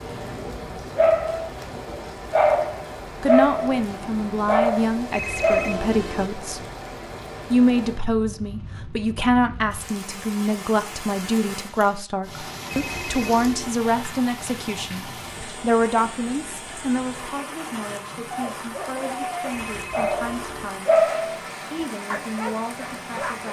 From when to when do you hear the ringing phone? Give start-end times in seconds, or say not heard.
5.1-6.3, 12.7-13.8, 19.5-20.7.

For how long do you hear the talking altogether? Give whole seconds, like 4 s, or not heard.
19 s.